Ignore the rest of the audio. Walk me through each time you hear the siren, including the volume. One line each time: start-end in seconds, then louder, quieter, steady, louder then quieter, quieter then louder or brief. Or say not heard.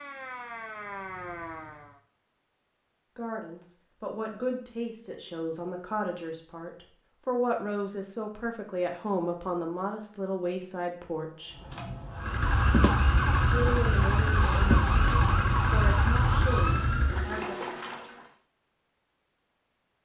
0.0-1.9 brief
12.1-17.3 steady.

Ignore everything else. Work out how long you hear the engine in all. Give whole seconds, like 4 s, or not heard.
7 s.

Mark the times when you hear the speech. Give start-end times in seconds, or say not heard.
3.1-11.6, 13.5-17.6.